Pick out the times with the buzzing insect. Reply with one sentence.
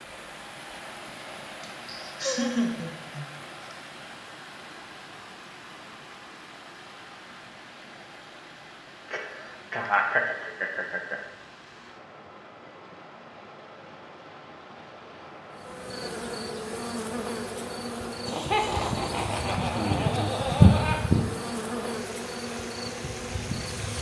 The buzzing insect can be heard from 15.6 to 23.9 s.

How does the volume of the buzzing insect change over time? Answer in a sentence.
The volume of the buzzing insect goes up, then down.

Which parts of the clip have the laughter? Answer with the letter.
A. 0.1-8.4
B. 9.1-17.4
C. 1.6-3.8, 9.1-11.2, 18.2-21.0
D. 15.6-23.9
C.